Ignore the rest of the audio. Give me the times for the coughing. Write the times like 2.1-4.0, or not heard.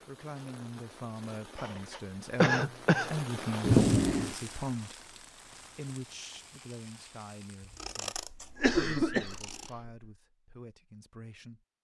1.6-3.6, 8.2-9.9.